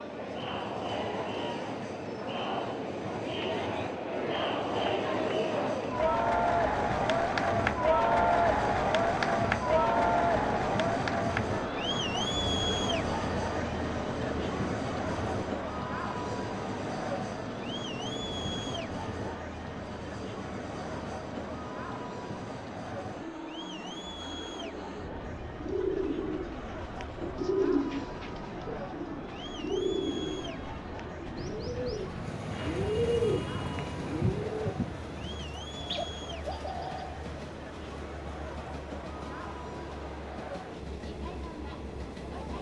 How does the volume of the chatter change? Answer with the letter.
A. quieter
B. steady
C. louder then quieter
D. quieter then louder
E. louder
A.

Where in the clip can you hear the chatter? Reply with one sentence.
The chatter can be heard from 0.0 to 42.5 s.